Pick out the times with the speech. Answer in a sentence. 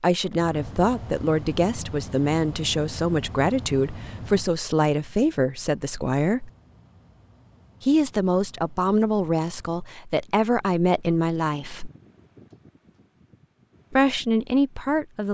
You can hear the speech from 0.0 to 6.5 s, from 7.8 to 11.9 s and from 13.9 to 15.2 s.